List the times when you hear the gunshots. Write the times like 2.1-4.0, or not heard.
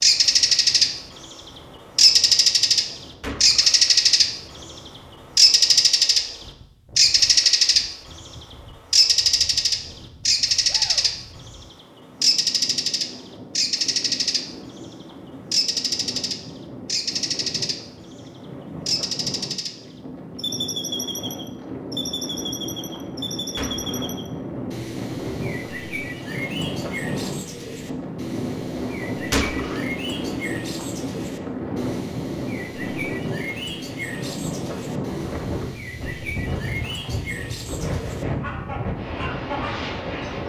3.2-3.8, 23.6-24.1, 29.3-29.9.